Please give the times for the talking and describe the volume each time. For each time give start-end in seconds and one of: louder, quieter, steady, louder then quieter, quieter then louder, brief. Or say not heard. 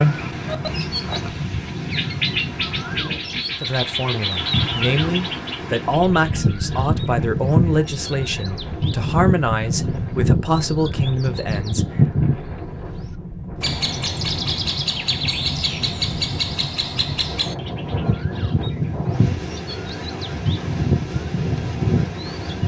3.6-11.8 steady.